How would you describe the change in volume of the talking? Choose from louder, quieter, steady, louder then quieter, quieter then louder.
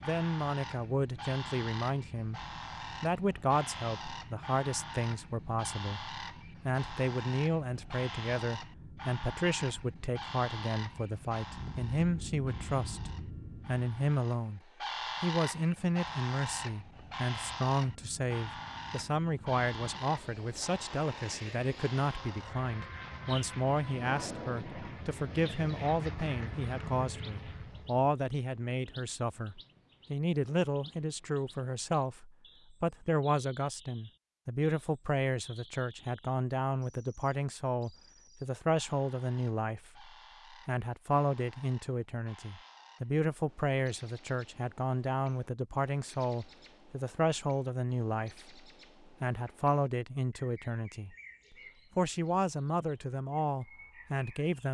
steady.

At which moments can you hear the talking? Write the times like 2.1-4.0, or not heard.
0.0-14.6, 15.2-48.5, 49.2-54.6.